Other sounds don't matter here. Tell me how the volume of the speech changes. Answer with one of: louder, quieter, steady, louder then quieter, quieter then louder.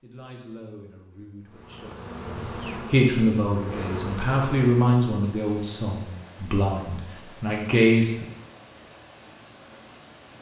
louder.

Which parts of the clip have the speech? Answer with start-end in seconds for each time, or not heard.
0.0-8.2.